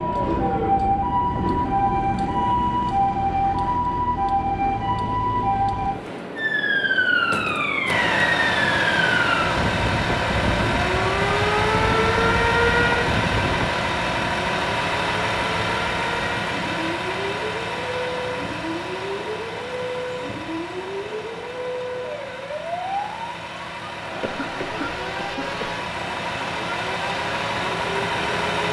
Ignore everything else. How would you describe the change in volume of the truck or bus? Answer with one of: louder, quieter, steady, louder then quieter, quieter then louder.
quieter then louder.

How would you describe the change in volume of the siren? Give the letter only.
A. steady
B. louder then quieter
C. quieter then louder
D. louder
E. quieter
E.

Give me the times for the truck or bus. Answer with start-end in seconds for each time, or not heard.
7.8-28.6.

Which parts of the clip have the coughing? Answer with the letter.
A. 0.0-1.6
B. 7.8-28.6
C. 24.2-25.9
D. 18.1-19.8
C.